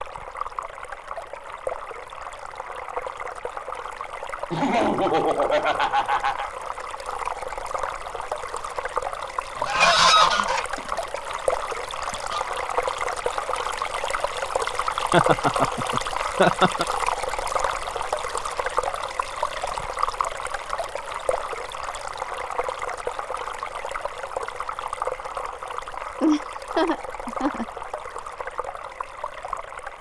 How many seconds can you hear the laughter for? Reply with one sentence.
The laughter can be heard for 5 seconds in total.